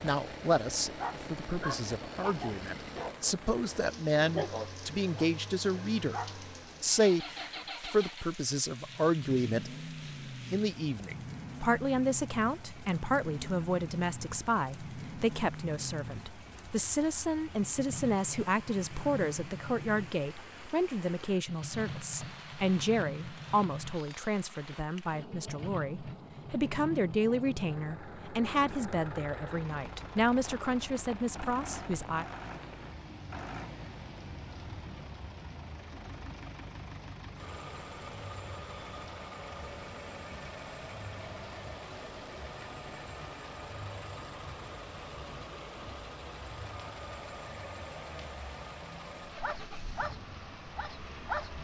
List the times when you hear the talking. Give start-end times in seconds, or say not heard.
0.0-6.2, 6.8-9.7, 10.4-32.2.